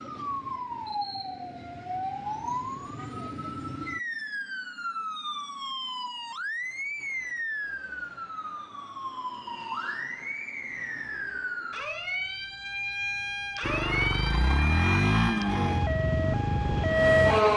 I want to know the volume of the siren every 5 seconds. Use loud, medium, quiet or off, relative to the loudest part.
medium, medium, medium, loud.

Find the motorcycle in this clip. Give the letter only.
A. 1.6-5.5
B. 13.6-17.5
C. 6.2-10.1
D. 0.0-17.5
B.